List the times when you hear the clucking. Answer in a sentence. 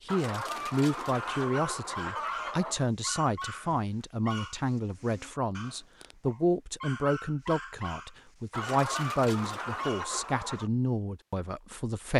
You can hear the clucking from 0.1 to 2.9 s and from 8.5 to 10.7 s.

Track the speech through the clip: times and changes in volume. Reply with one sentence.
The speech can be heard from 0.1 to 12.1 s, at a steady volume.